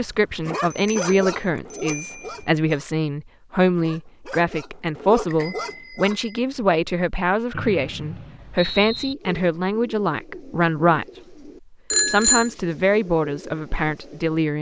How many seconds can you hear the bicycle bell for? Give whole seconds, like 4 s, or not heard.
3 s.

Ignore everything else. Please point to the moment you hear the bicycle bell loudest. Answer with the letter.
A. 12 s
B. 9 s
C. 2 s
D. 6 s
A.